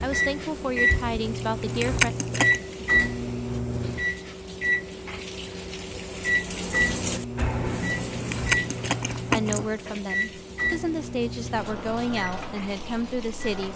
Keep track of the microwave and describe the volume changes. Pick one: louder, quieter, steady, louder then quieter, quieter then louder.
quieter.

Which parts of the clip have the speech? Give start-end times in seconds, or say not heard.
0.0-2.1, 9.3-13.7.